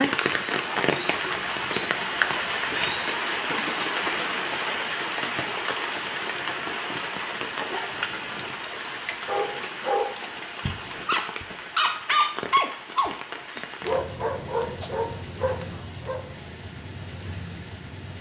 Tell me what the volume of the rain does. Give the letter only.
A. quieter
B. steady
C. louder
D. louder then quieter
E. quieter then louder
A.